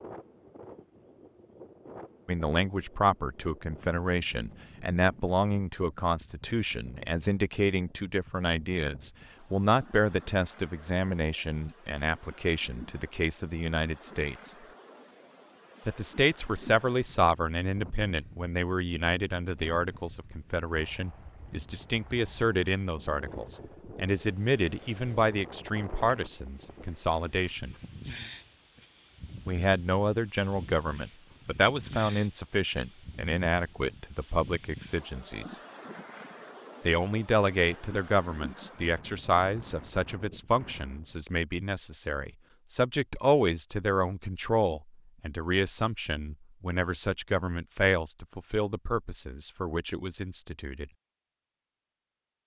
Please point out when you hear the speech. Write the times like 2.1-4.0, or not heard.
2.2-14.6, 15.8-27.8, 29.4-35.5, 36.9-50.9.